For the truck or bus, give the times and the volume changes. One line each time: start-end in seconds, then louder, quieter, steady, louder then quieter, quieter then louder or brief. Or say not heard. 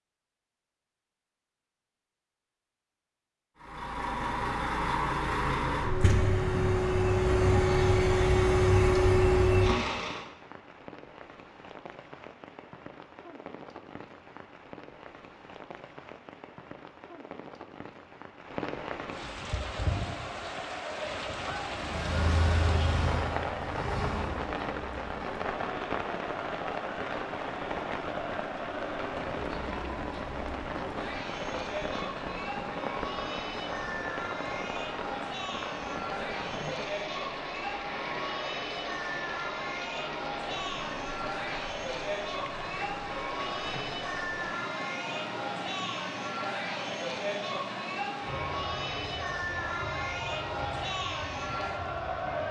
3.5-10.2 louder
21.8-24.4 brief.